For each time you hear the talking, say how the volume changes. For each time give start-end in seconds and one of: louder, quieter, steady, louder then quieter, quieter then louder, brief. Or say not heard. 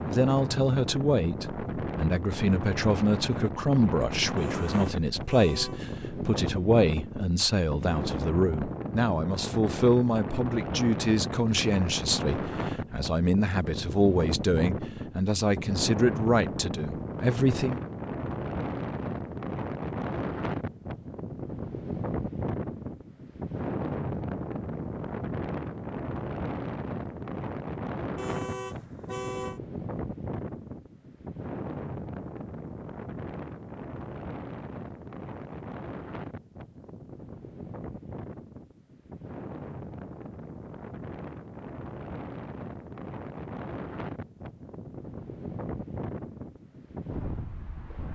0.1-17.8 steady.